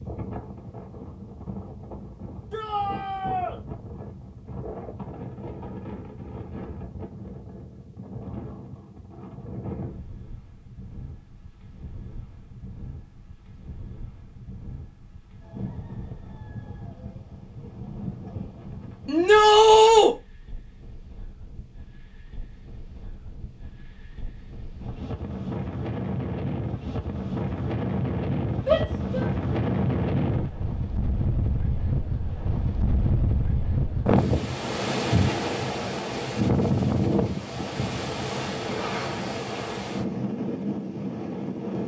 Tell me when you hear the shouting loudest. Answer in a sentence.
The loudest moment of the shouting is at 20 seconds.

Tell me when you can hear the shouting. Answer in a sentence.
The shouting can be heard from 2.5 to 3.5 s, from 19.1 to 20.1 s and from 28.6 to 29.2 s.